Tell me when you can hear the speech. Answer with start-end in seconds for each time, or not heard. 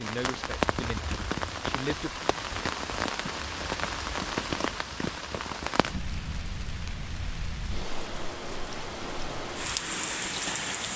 0.0-2.1.